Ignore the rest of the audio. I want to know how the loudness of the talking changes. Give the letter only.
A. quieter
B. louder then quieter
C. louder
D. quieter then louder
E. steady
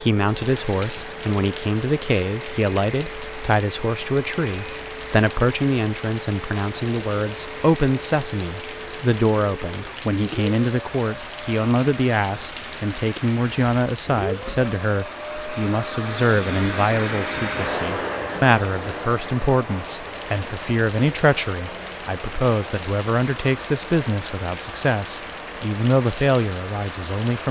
E.